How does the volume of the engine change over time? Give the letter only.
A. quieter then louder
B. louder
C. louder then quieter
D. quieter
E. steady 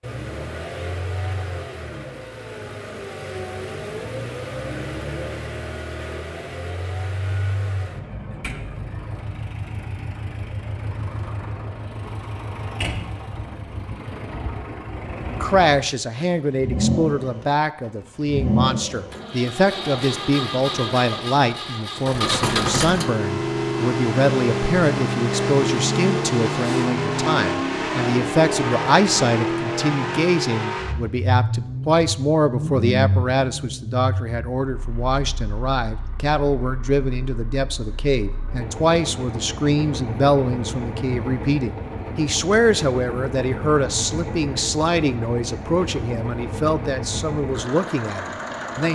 C.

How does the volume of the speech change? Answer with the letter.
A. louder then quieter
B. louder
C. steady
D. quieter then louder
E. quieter
C.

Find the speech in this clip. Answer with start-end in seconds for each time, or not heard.
15.3-48.9.